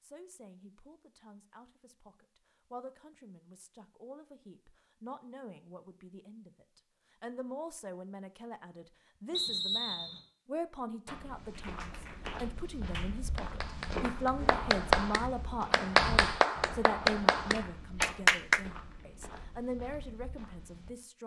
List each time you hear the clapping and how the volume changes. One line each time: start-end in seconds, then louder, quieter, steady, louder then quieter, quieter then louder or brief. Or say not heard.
11.5-18.6 louder.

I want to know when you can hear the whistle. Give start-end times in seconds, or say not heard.
9.3-10.2.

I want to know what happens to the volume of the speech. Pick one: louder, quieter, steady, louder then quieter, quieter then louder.
louder.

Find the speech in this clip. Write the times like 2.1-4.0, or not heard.
0.0-21.2.